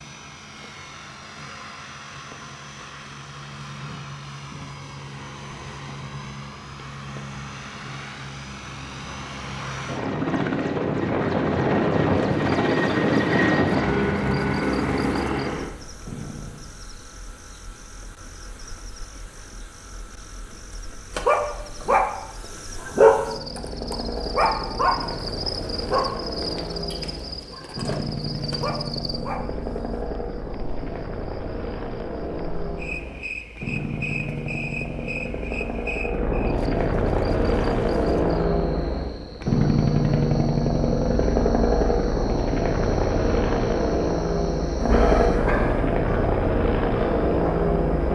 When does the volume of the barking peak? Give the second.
23 s.